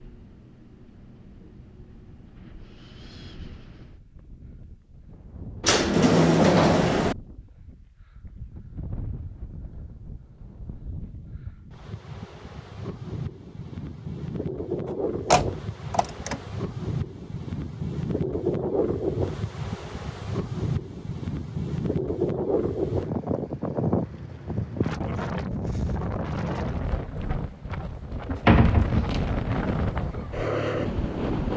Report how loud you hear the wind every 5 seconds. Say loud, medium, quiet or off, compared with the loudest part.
quiet, quiet, medium, loud, loud, loud, loud.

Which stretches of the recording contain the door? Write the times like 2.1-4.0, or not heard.
5.6-7.2, 15.3-16.4, 28.4-29.2.